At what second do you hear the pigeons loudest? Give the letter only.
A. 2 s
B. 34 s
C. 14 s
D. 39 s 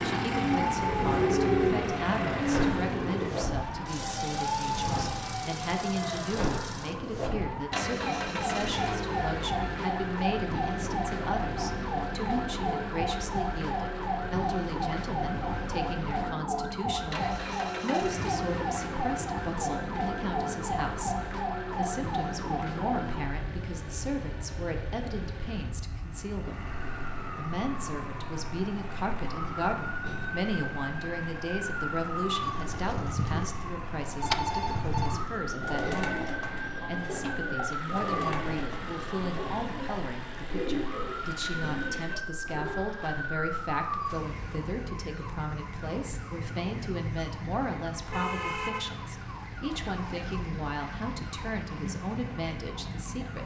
A.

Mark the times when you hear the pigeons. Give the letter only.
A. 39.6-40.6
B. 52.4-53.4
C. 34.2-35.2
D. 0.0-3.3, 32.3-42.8
D.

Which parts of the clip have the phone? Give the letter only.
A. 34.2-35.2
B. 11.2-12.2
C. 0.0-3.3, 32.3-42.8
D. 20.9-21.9
A.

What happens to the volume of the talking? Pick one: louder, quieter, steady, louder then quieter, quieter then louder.
steady.